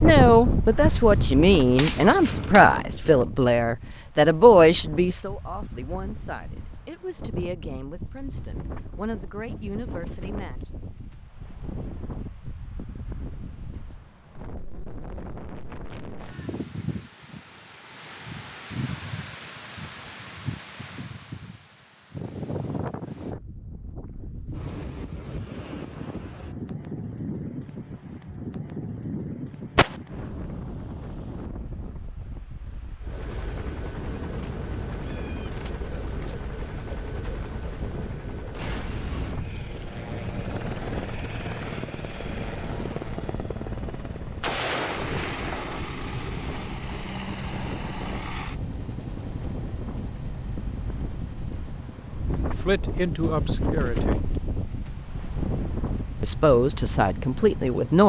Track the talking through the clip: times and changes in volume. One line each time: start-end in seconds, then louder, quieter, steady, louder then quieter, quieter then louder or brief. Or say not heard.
0.0-10.6 quieter
52.6-54.2 brief
56.2-58.0 brief.